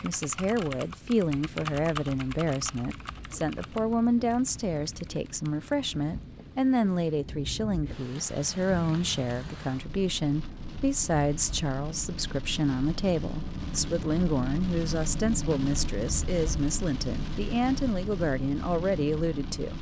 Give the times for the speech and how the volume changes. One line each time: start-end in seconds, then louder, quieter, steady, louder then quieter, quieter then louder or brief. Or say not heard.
0.0-19.7 steady.